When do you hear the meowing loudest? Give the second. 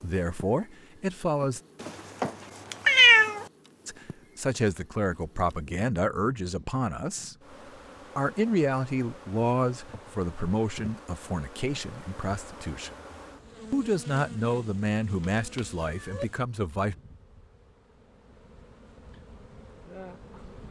3 s.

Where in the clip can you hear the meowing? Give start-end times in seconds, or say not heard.
1.8-3.5, 15.3-16.2.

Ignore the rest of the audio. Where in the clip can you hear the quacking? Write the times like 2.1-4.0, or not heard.
not heard.